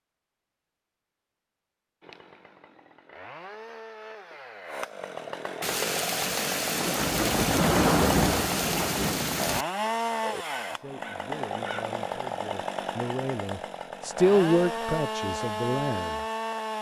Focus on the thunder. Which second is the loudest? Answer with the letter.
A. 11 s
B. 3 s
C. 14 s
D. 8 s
D.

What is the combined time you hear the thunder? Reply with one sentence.
You can hear the thunder for 4 seconds altogether.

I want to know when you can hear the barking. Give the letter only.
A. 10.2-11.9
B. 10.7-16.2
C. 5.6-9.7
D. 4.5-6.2
A.